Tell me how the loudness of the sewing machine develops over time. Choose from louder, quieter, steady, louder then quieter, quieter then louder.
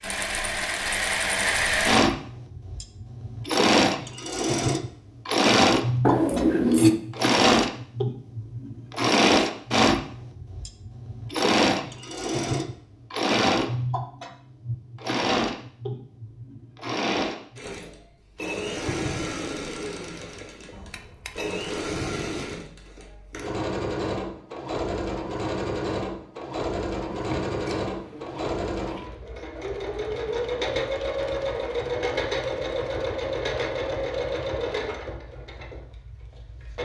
quieter.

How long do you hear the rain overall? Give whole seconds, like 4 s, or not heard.
not heard.